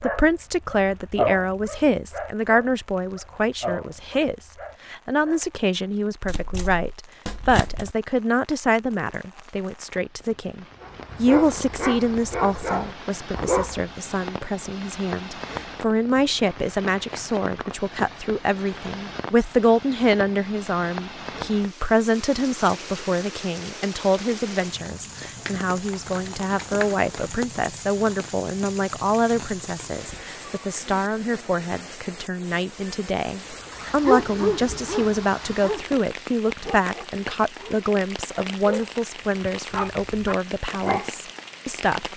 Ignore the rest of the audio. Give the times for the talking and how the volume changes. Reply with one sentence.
You can hear the talking from 0.0 to 42.1 s, at a steady volume.